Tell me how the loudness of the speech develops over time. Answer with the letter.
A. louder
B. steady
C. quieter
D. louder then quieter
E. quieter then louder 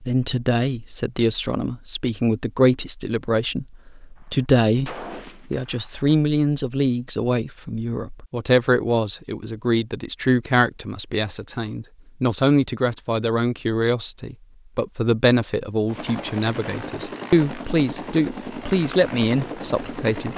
B.